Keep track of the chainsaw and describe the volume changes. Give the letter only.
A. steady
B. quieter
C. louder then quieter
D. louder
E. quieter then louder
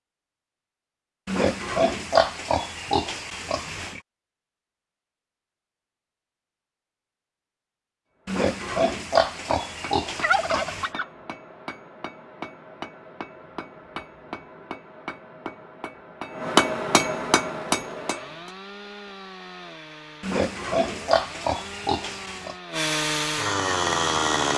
D.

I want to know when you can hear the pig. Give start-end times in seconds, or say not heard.
1.2-4.0, 8.2-10.9, 20.2-22.6.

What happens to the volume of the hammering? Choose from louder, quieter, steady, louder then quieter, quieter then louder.
louder.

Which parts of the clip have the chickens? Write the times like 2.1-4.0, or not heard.
10.2-11.1.